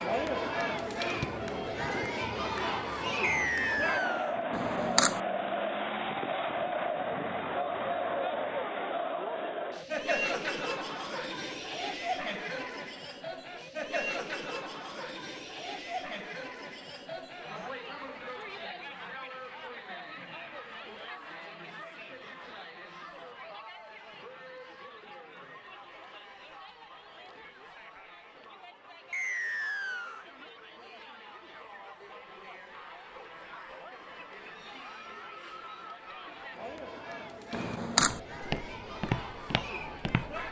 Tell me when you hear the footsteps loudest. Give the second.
39 s.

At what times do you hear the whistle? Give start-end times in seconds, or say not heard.
3.2-4.3, 29.1-30.2.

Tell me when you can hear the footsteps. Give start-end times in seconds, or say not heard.
38.0-40.4.